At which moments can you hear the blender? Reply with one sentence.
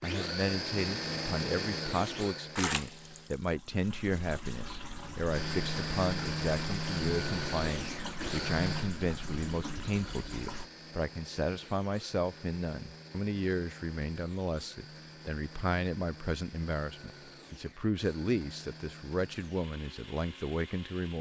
You can hear the blender from 0.0 to 3.4 s and from 5.3 to 21.1 s.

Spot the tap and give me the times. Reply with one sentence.
You can hear the tap from 2.5 to 10.7 s.